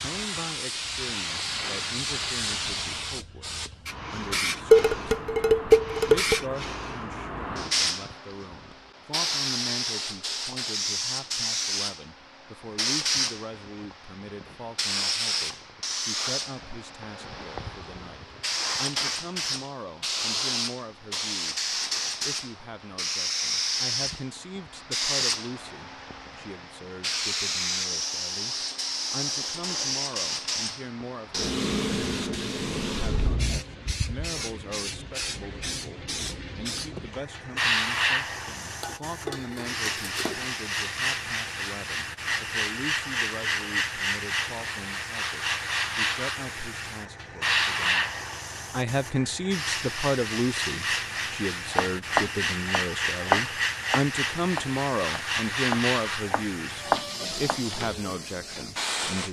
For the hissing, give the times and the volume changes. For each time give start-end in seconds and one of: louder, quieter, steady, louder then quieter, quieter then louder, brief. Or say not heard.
0.0-59.2 steady.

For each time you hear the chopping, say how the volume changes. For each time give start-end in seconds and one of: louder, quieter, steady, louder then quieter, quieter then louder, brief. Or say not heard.
51.1-57.6 quieter then louder.